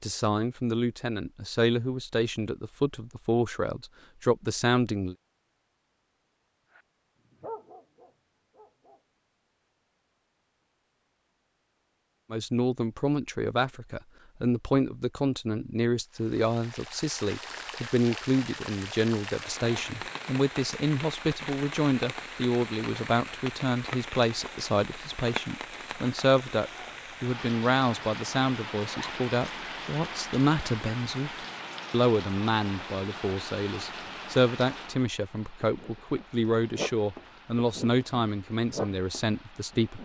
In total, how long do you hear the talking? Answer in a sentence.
The talking can be heard for 33 seconds in total.